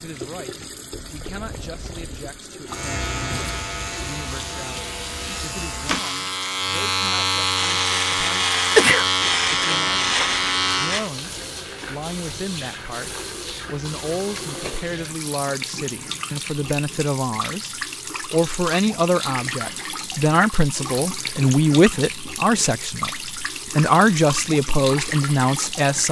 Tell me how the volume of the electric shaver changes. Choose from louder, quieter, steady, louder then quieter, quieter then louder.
louder.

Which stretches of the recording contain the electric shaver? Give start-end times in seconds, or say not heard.
2.6-11.1.